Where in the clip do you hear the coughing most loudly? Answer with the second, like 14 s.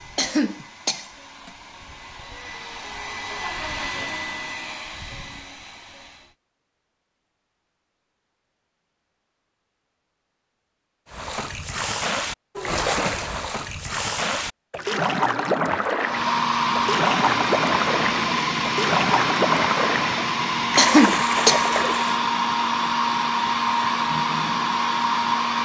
21 s.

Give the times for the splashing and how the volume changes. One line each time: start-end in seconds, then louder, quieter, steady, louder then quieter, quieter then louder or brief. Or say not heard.
11.1-22.2 steady.